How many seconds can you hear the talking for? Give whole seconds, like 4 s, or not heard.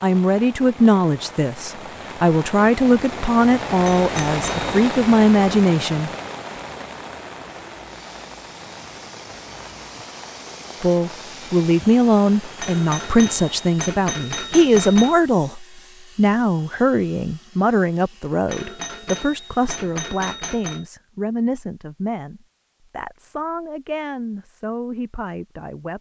21 s.